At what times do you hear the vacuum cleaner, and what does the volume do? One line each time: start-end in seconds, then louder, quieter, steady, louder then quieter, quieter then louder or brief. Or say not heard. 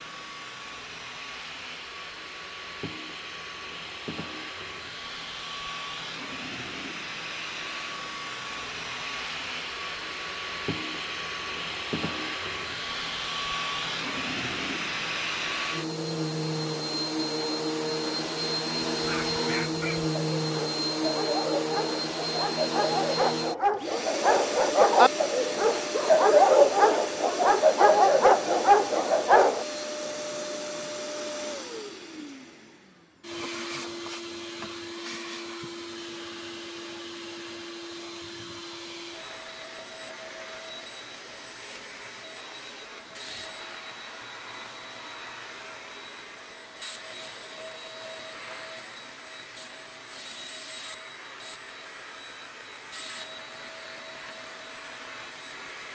0.0-55.8 louder then quieter.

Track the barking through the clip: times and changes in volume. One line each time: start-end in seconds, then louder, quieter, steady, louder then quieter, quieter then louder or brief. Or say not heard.
18.9-29.6 louder.